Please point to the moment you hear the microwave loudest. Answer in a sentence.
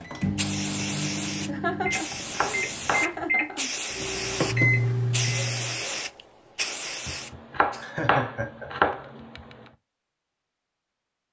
The loudest moment of the microwave is at 5 seconds.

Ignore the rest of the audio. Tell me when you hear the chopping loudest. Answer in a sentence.
The volume of the chopping peaks at 9 seconds.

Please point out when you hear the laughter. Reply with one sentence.
You can hear the laughter from 1.4 to 3.7 s and from 7.8 to 8.9 s.